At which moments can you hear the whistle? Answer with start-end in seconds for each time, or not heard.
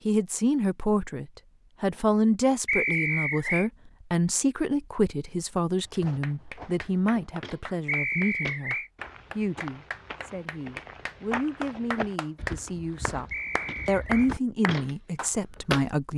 2.6-3.7, 7.8-8.9, 13.3-14.3.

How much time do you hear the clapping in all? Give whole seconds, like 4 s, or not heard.
10 s.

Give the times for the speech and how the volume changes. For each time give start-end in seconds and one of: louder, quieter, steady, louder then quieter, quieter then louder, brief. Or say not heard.
0.1-13.2 quieter
13.8-16.1 brief.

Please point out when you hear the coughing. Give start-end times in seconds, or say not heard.
not heard.